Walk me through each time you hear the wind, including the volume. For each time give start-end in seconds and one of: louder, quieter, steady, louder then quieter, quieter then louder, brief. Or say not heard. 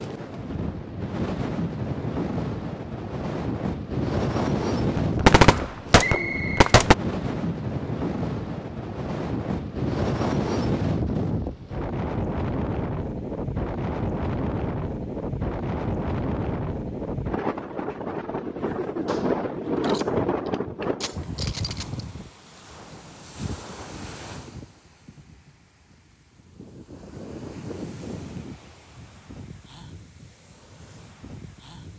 0.0-31.9 quieter.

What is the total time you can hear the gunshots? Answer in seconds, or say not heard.
5 s.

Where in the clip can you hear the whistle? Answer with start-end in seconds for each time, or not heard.
6.0-6.7.